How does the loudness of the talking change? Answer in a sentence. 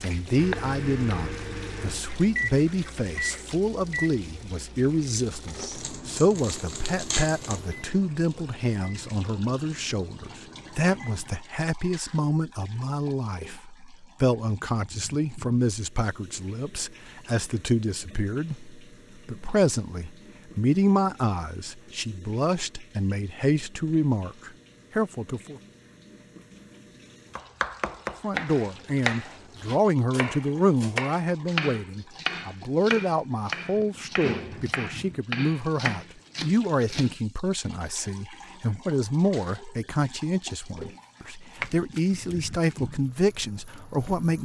The loudness of the talking stays about the same.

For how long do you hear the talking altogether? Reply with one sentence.
You can hear the talking for 42 seconds altogether.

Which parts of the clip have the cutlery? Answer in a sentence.
You can't hear the cutlery here.